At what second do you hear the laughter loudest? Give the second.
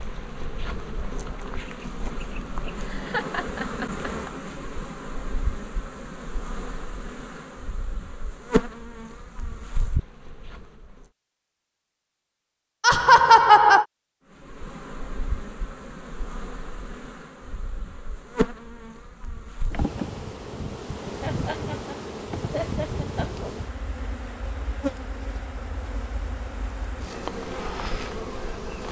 13 s.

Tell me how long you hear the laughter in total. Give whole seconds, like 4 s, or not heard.
5 s.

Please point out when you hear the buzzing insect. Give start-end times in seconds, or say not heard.
0.0-11.1, 14.3-28.8.